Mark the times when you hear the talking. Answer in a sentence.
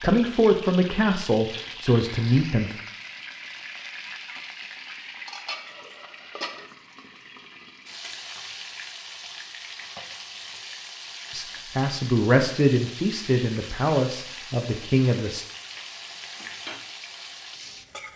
The talking can be heard from 0.0 to 2.8 s and from 11.3 to 15.4 s.